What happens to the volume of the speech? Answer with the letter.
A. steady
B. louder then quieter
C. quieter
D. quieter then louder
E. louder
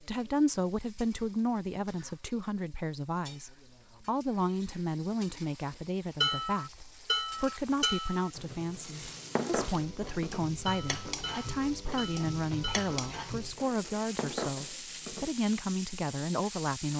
A.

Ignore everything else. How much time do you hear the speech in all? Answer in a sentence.
The speech can be heard for 17 seconds in total.